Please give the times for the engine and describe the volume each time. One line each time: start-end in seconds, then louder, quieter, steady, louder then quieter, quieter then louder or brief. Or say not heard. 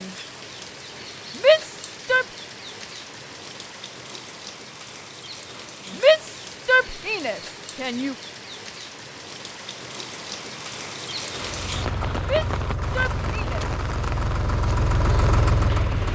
11.5-16.1 louder.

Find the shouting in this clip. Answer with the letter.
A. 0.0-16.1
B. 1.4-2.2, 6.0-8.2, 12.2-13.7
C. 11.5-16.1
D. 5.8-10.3
B.